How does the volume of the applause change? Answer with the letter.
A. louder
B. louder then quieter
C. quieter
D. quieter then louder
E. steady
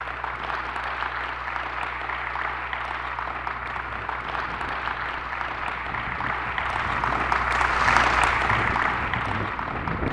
A.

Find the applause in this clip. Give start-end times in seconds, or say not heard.
0.0-10.0.